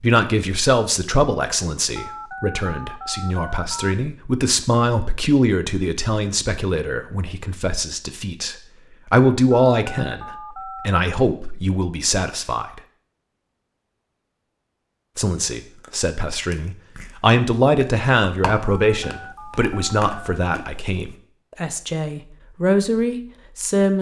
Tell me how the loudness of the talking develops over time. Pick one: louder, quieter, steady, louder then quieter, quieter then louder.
steady.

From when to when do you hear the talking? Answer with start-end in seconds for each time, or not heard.
0.0-12.8, 15.2-23.9.